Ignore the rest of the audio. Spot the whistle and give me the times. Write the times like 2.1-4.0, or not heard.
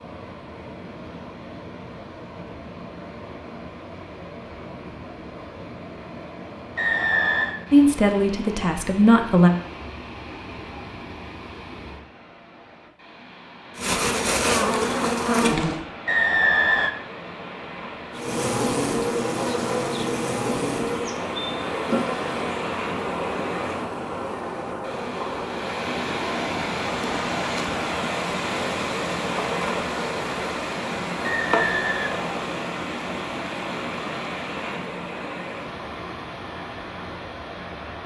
6.8-7.5, 16.1-16.9, 31.2-32.2.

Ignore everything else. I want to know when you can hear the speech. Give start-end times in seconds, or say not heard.
7.7-9.5.